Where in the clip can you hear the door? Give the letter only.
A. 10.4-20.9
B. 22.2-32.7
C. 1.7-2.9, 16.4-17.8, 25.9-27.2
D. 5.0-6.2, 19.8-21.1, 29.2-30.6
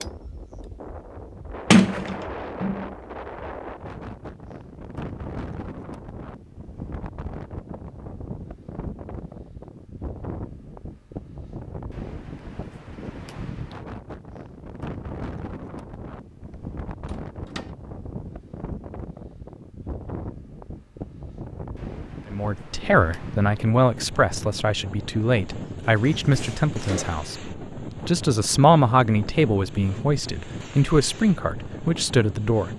C.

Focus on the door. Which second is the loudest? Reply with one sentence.
The loudest moment of the door is at 2 seconds.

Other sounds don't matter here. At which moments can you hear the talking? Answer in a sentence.
The talking can be heard from 22.2 to 32.7 s.